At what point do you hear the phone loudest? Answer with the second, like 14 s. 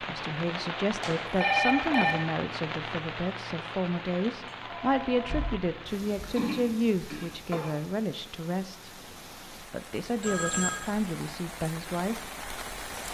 2 s.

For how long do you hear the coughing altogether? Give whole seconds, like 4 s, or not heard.
2 s.